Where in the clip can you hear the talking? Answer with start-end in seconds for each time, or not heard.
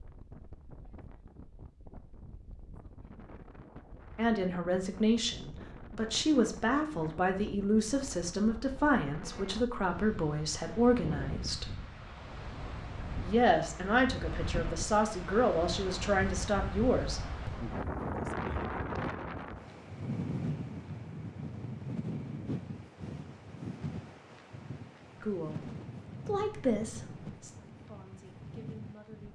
4.2-11.8, 13.2-17.2, 25.2-29.2.